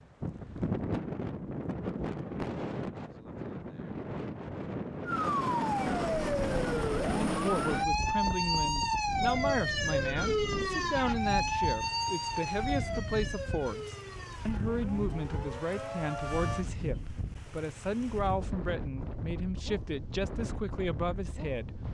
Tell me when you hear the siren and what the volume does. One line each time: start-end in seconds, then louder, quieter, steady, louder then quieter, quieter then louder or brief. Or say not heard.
5.0-16.6 quieter.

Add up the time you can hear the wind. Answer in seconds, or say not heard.
22 s.